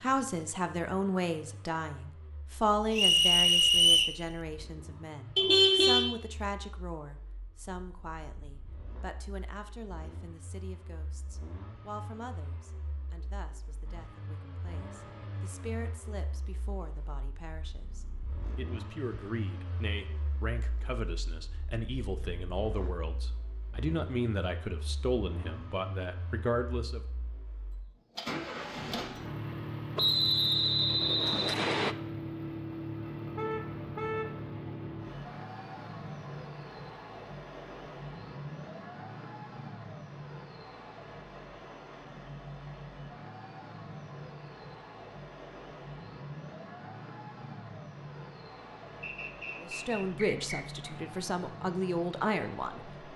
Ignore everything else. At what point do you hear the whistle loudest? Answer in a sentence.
The loudest moment of the whistle is at 4 seconds.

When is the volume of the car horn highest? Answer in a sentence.
The loudest moment of the car horn is at 6 seconds.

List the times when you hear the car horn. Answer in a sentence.
The car horn can be heard from 5.3 to 6.0 s and from 33.4 to 34.4 s.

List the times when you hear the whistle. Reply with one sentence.
You can hear the whistle from 3.0 to 4.2 s, from 29.9 to 31.9 s and from 49.0 to 50.6 s.